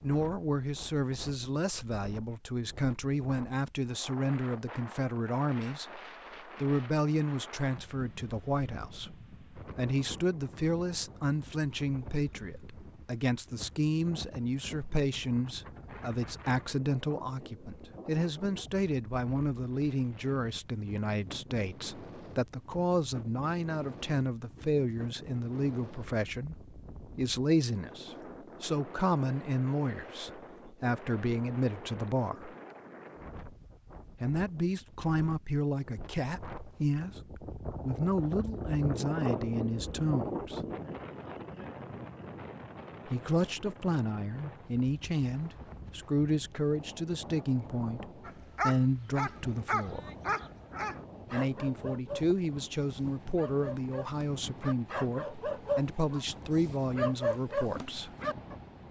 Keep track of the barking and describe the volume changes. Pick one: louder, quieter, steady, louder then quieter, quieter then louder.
quieter then louder.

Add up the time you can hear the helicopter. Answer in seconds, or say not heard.
not heard.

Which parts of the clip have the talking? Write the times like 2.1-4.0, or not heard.
0.0-32.5, 34.2-40.6, 43.0-50.1, 51.3-58.1.